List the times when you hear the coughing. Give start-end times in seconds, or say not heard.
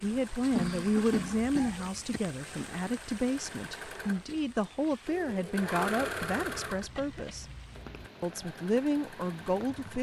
0.5-2.0, 6.2-8.1.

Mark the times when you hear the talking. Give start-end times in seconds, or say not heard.
0.0-7.5, 8.2-9.9.